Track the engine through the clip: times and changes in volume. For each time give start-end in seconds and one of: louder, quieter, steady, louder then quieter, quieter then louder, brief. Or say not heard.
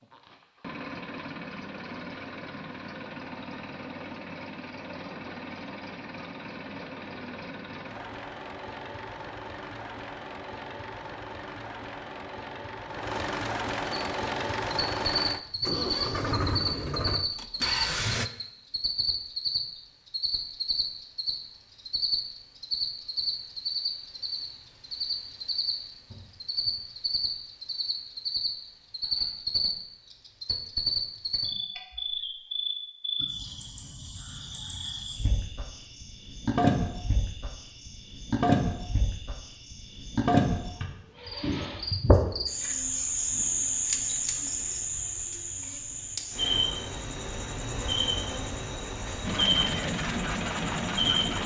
0.0-18.3 louder
49.2-51.4 brief.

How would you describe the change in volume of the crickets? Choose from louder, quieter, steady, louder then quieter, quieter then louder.
steady.